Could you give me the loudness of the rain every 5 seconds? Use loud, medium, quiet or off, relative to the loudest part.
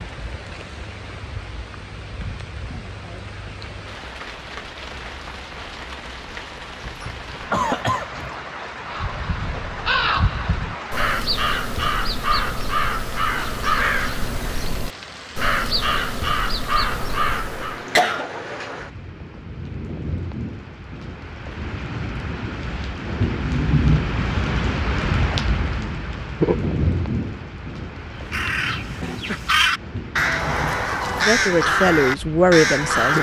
medium, medium, medium, medium, loud, loud, medium.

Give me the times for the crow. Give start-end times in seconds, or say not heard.
8.9-17.9, 28.3-33.1.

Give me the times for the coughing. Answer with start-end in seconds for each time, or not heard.
6.8-8.3, 17.6-18.3, 28.4-29.4.